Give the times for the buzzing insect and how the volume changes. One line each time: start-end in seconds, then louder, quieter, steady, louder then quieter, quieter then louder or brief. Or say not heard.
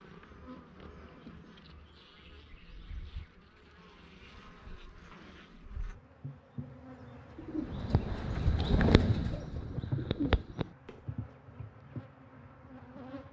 0.0-13.2 louder then quieter.